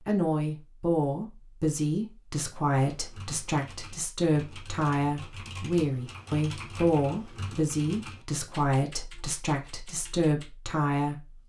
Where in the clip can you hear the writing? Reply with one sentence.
The writing can't be heard in this clip.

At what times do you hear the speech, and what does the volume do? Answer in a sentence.
The speech can be heard from 0.1 to 11.4 s, at a steady volume.